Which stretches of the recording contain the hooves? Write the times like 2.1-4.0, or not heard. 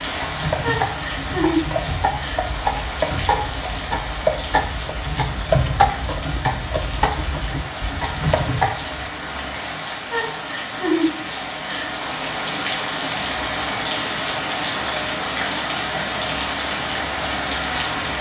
0.0-8.9.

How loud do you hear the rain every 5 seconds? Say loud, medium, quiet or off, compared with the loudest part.
loud, medium, loud, loud.